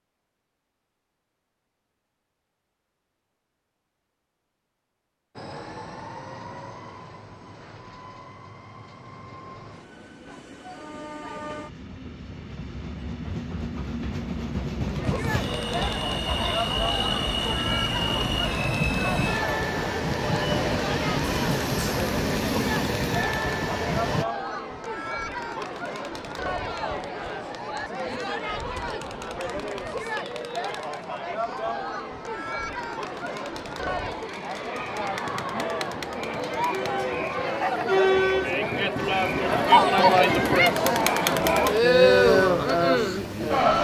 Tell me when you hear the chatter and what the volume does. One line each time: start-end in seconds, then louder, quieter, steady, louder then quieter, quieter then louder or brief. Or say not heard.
14.8-43.8 louder.